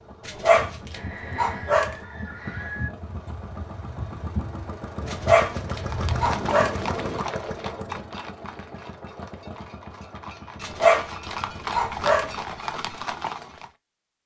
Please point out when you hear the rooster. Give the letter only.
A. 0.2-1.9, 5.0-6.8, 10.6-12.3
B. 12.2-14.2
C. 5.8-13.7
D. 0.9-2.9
D.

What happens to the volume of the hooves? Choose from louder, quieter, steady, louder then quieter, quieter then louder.
quieter then louder.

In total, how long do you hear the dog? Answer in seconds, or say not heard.
5 s.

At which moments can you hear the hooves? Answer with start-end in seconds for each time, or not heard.
5.8-13.7.